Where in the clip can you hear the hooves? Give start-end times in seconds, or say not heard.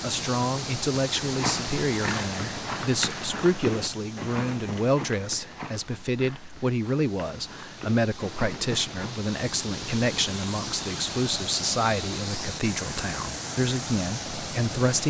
0.9-9.2.